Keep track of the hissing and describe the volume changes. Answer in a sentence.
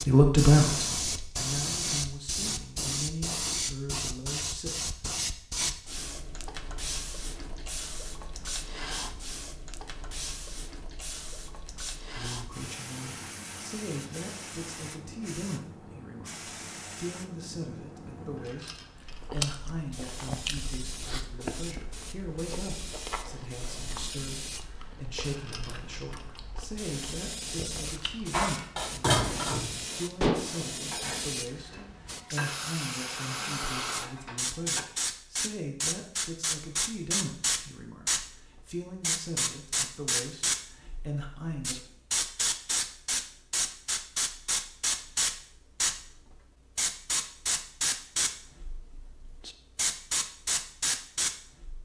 The loudness of the hissing goes down, then up.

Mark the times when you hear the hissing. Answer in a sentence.
You can hear the hissing from 0.0 to 51.7 s.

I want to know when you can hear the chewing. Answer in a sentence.
The chewing can be heard from 18.9 to 28.4 s.